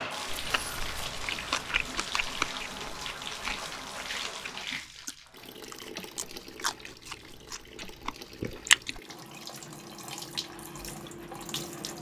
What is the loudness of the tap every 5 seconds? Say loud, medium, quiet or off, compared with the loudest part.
loud, medium, loud.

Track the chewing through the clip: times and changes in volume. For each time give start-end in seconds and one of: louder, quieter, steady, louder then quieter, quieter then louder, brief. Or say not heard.
0.2-9.0 quieter then louder.